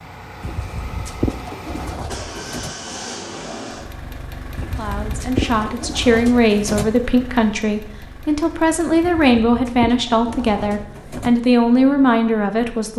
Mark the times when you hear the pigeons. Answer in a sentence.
The pigeons can be heard from 0.4 to 2.8 s, from 4.5 to 6.9 s and from 9.0 to 11.3 s.